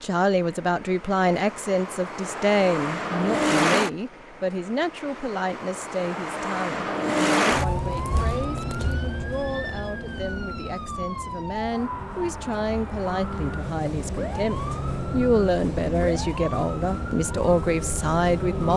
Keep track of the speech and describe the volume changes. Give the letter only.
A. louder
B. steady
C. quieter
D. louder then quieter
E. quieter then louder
E.